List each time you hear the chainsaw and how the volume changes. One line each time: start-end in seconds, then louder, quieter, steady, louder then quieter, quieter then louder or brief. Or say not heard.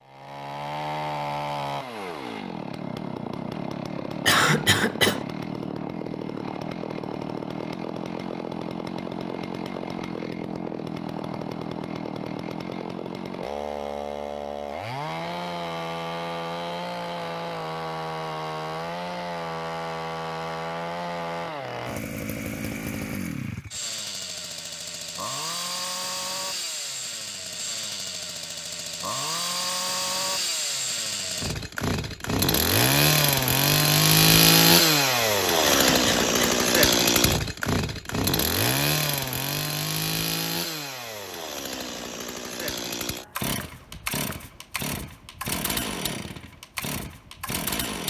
0.0-48.0 louder then quieter.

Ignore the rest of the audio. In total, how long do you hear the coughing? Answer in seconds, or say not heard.
2 s.